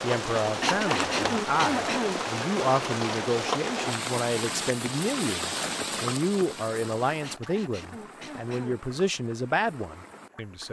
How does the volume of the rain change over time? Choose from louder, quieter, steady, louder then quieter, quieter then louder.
quieter.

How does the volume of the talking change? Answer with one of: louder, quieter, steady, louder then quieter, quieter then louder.
steady.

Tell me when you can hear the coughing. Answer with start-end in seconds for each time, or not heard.
0.5-2.2, 7.1-8.8.